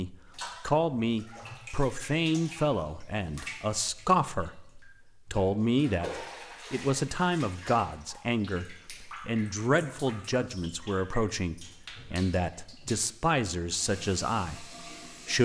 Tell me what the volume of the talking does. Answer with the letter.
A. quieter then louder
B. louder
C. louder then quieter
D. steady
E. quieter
D.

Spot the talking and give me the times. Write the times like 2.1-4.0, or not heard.
0.0-15.4.